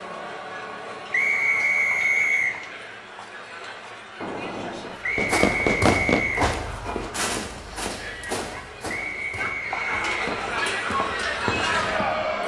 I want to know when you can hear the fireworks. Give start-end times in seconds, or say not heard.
4.2-10.6.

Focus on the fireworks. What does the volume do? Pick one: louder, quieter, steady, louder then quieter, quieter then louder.
quieter.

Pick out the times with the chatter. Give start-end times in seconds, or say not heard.
0.0-12.4.